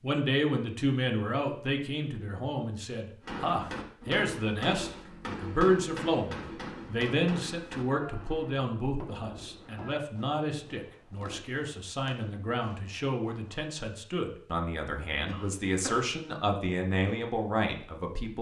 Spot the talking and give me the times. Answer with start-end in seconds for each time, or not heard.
0.0-18.3.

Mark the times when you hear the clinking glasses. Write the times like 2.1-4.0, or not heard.
not heard.